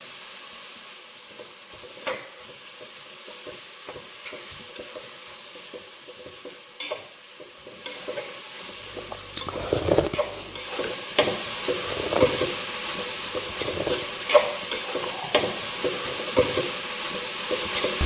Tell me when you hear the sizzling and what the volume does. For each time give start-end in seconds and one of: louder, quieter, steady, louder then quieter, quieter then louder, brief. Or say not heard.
0.0-18.0 louder.